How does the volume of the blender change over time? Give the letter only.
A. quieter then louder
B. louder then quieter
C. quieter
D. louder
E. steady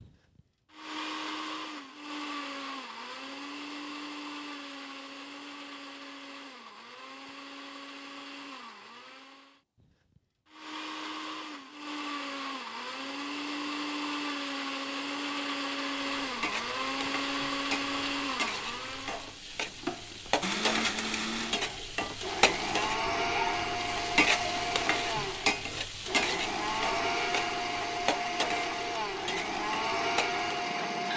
D.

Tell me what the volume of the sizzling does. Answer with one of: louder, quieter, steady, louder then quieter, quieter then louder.
louder then quieter.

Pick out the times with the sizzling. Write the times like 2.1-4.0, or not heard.
16.0-31.1.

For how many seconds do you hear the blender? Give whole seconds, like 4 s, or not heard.
31 s.